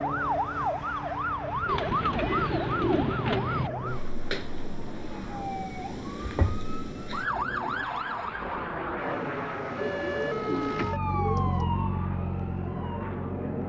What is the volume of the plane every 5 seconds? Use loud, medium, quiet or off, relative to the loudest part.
medium, loud, loud.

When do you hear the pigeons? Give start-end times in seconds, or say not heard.
1.6-3.7, 9.8-11.7.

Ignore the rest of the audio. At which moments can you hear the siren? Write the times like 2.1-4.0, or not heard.
0.0-13.6.